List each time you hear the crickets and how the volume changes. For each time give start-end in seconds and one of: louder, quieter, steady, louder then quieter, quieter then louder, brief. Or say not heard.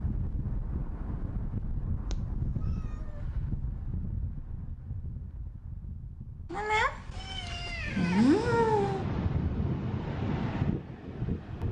not heard.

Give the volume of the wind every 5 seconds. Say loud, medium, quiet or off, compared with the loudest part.
medium, loud, loud.